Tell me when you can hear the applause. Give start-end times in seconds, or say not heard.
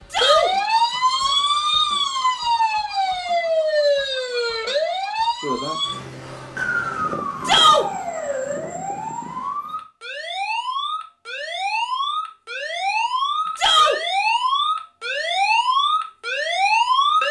not heard.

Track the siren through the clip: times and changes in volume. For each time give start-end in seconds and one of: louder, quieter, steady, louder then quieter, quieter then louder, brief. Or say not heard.
0.0-17.2 quieter then louder.